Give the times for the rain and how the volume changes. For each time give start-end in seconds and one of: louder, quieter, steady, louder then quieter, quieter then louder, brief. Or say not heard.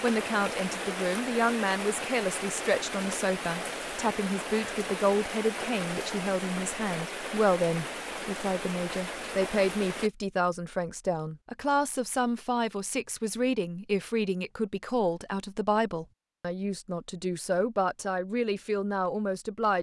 0.0-10.1 steady.